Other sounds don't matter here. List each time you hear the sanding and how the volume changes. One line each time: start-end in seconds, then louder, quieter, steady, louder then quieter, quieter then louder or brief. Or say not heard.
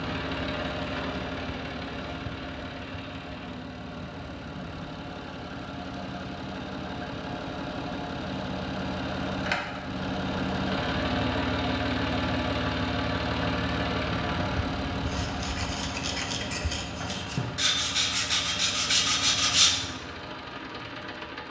15.0-19.8 louder.